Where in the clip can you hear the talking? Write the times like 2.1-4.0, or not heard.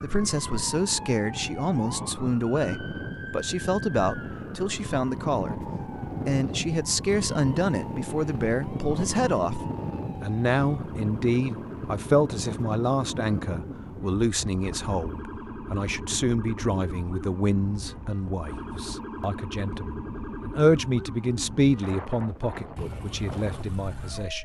0.0-24.4.